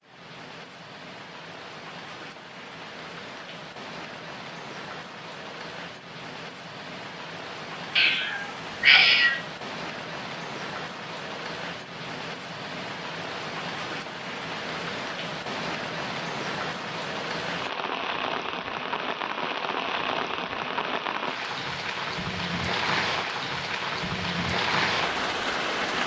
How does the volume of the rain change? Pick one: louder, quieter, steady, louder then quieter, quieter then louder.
louder.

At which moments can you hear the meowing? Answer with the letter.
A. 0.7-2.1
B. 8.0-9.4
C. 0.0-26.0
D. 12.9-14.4
B.